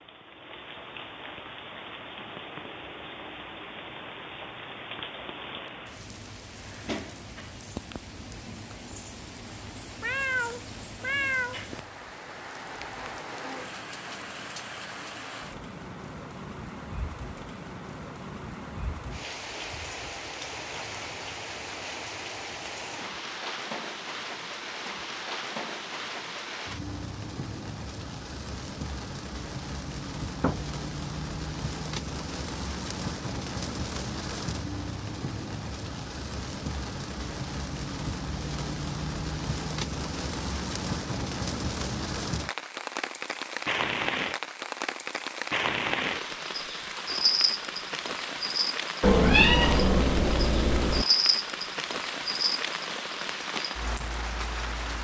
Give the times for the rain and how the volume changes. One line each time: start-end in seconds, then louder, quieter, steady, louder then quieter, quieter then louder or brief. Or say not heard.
0.0-54.9 louder.